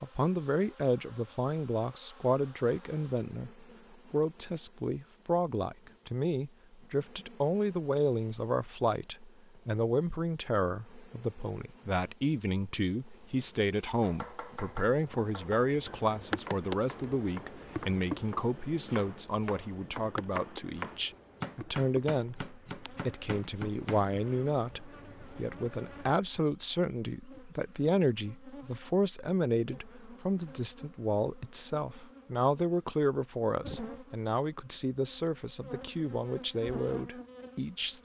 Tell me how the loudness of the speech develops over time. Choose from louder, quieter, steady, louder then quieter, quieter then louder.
steady.